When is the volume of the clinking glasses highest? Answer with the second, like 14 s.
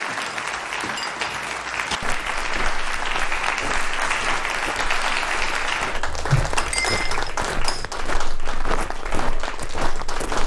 7 s.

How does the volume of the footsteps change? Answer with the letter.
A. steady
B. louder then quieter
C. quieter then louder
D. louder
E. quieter
D.